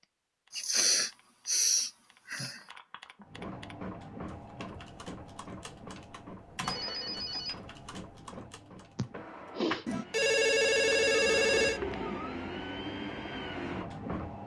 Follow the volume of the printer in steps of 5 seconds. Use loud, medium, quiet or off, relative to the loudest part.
medium, medium, loud.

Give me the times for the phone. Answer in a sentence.
The phone can be heard from 2.5 to 3.2 s, from 6.6 to 7.7 s and from 9.8 to 11.8 s.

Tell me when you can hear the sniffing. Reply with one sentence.
The sniffing can be heard from 0.5 to 2.6 s and from 8.9 to 10.3 s.